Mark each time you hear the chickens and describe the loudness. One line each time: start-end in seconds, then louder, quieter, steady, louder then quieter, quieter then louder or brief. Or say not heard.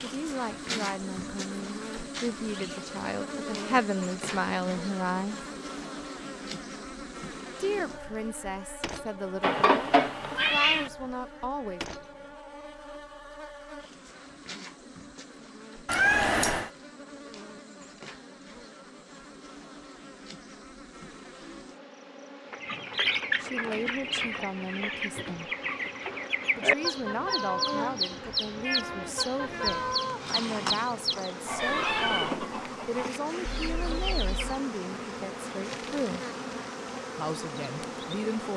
22.5-34.6 steady.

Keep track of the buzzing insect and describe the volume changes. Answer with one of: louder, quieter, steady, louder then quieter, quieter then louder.
quieter then louder.